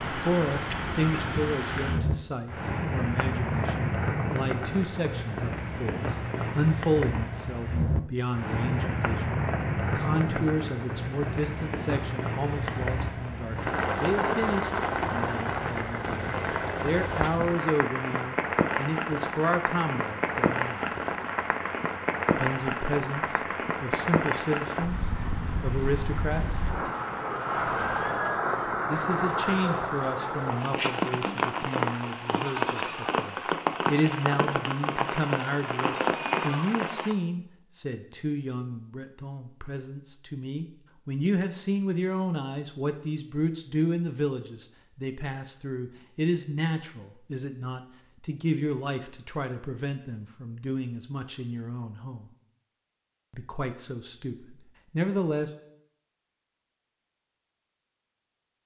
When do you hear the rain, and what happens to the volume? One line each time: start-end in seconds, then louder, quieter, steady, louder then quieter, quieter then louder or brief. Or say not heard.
0.0-37.1 steady.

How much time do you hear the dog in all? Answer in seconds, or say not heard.
not heard.